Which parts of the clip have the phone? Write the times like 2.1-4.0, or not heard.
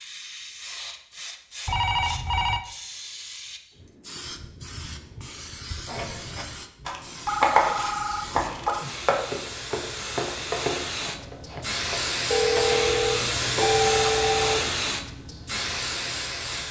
1.6-2.6, 7.2-8.8, 12.3-14.8.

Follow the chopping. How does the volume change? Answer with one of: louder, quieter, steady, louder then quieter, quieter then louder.
quieter.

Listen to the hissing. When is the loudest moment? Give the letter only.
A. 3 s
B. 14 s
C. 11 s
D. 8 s
B.